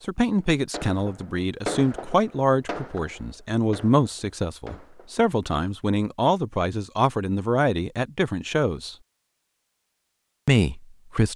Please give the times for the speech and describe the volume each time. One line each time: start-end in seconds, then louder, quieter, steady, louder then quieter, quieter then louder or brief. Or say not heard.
0.1-8.9 steady
10.4-11.3 brief.